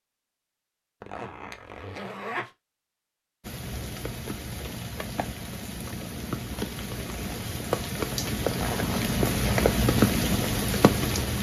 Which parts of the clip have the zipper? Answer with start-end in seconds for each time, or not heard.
1.0-2.5, 8.5-9.7.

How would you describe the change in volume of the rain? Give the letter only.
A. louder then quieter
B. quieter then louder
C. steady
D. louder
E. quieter
D.